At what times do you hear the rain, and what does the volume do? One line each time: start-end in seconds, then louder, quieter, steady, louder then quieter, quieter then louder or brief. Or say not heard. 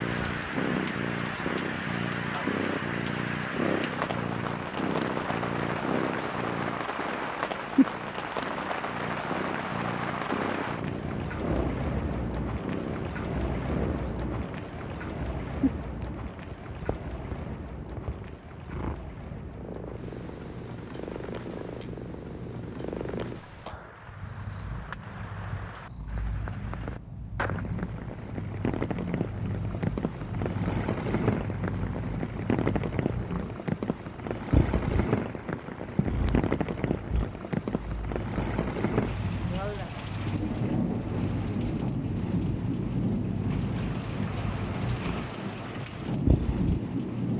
0.0-47.3 quieter then louder.